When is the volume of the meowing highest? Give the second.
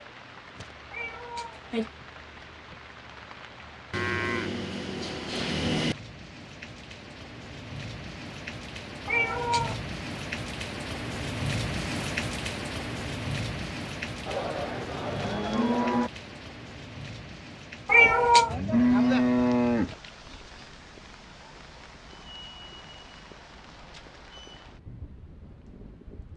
18 s.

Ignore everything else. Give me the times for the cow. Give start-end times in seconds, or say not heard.
3.9-6.0, 14.2-16.1, 18.4-19.9.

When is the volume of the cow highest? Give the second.
19 s.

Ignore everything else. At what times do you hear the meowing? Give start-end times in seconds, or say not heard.
0.9-1.9, 9.1-9.8, 17.9-18.6.